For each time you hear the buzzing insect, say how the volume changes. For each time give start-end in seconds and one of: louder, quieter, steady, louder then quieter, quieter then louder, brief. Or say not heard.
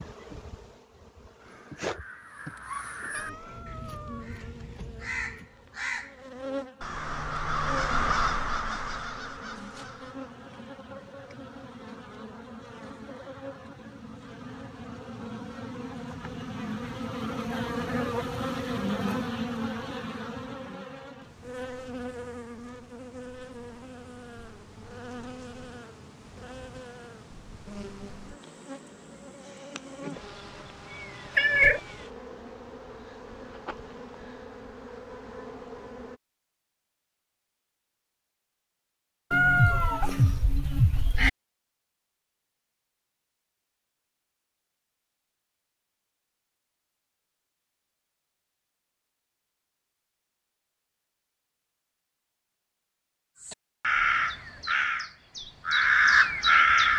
0.0-36.2 louder then quieter.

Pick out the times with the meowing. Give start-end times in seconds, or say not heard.
3.1-4.3, 31.4-31.8, 39.3-41.3.